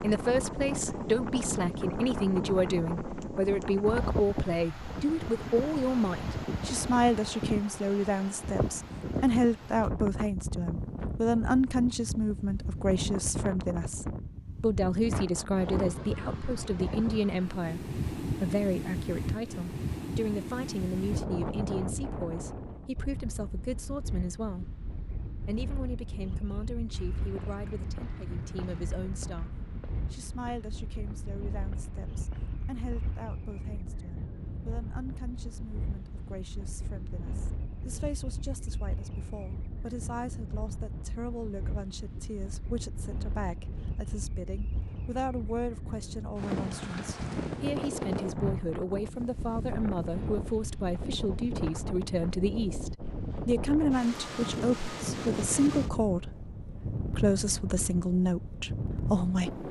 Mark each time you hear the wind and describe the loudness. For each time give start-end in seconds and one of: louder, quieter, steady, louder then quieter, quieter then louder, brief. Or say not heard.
0.0-59.6 quieter then louder.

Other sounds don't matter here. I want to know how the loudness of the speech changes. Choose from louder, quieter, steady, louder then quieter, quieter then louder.
quieter then louder.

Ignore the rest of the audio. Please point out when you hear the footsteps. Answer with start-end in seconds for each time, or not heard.
26.9-33.2.